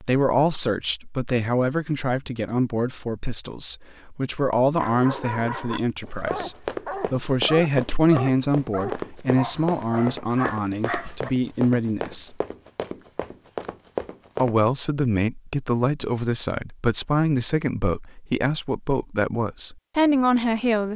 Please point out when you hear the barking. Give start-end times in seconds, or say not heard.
4.8-11.3.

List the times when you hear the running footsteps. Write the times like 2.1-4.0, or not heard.
6.0-14.6.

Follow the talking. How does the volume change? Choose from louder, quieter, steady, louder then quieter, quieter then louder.
steady.